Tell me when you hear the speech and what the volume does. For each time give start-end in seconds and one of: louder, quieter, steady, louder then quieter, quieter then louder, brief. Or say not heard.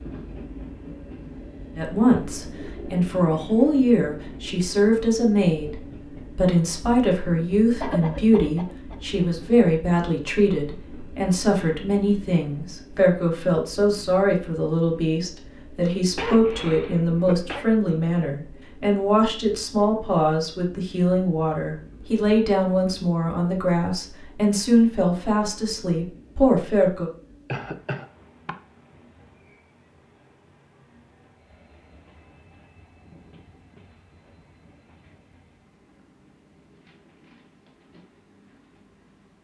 1.8-27.1 steady.